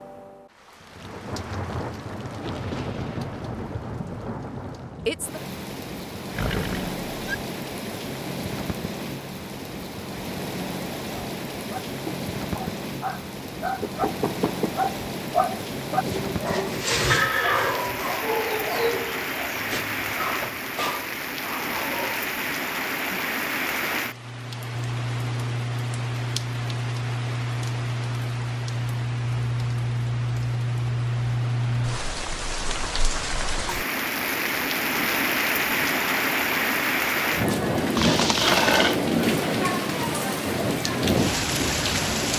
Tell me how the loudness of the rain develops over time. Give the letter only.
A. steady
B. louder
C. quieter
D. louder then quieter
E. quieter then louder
B.